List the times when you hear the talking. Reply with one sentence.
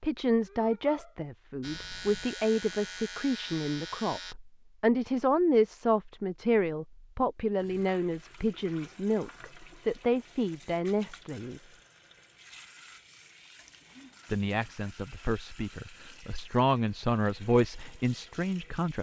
You can hear the talking from 0.0 to 11.7 s and from 14.3 to 18.9 s.